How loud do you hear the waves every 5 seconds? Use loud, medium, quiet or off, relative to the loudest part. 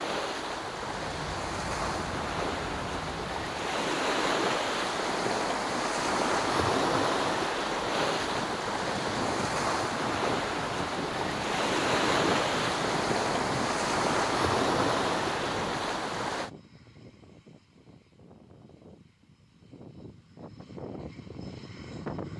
loud, loud, loud, loud, off.